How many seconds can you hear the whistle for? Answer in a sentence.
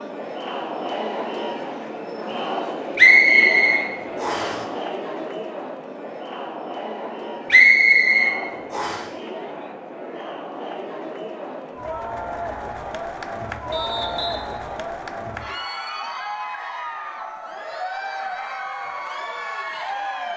You can hear the whistle for 4 seconds altogether.